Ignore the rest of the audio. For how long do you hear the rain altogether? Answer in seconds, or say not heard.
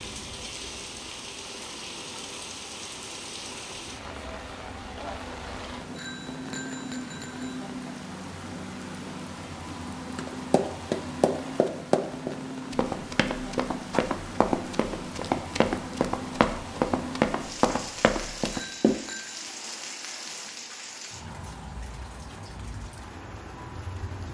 24 s.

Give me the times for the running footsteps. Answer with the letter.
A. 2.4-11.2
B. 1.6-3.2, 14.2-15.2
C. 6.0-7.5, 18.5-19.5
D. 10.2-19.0
D.